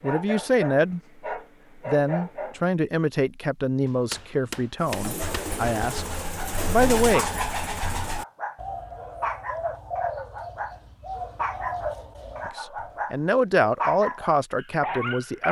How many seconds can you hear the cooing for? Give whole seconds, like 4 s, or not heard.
8 s.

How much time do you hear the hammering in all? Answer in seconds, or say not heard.
2 s.